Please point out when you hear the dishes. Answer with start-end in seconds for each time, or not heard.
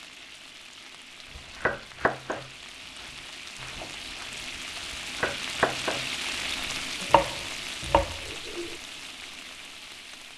not heard.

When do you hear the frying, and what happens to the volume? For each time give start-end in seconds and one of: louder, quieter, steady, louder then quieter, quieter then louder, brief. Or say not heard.
0.0-10.3 louder then quieter.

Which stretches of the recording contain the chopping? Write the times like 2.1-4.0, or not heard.
1.3-8.8.